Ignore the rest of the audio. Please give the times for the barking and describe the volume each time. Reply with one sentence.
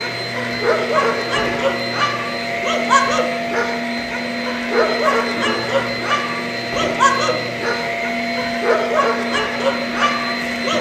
You can hear the barking from 0.0 to 10.7 s, at a steady volume.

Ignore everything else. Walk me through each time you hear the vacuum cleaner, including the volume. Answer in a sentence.
The vacuum cleaner can be heard from 0.0 to 10.7 s, at a steady volume.